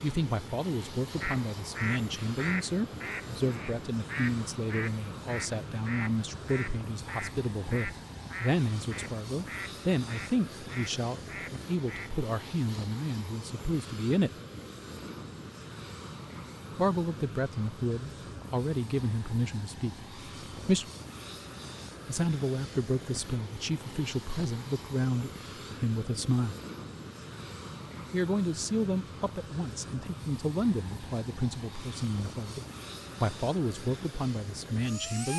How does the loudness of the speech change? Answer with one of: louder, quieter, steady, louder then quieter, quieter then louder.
steady.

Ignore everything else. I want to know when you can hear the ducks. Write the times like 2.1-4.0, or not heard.
1.2-12.2.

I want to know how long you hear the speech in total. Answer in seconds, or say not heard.
30 s.